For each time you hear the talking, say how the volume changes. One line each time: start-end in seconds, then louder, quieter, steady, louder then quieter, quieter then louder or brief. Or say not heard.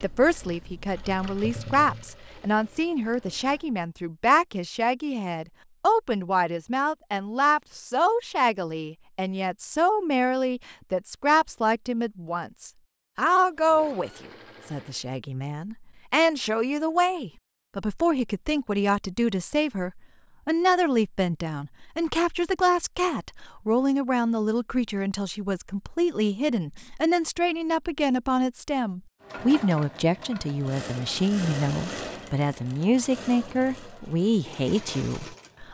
0.0-35.6 steady.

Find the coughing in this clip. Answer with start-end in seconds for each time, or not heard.
not heard.